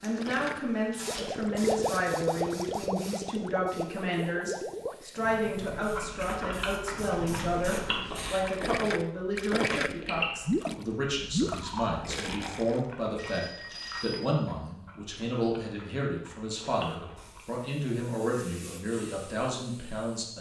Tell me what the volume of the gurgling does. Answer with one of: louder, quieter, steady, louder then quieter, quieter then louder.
quieter then louder.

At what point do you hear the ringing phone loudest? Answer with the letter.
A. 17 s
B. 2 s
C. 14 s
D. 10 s
C.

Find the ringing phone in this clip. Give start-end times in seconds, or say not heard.
0.9-1.4, 13.2-14.3.